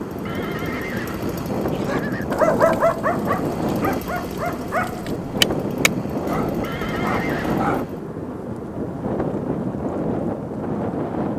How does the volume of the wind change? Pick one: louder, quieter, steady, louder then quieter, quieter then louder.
steady.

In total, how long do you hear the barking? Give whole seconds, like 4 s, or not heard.
6 s.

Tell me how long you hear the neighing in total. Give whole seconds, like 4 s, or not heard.
3 s.